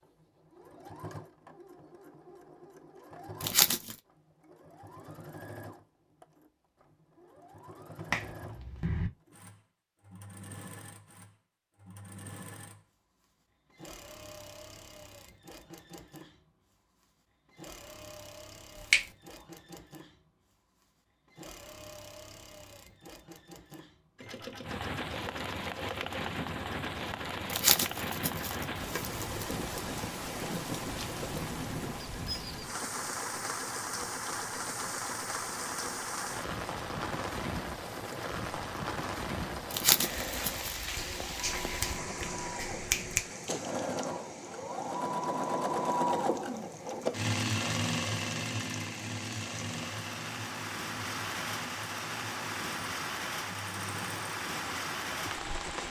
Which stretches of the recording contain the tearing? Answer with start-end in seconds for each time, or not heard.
3.4-4.0, 27.5-29.6, 39.7-40.7.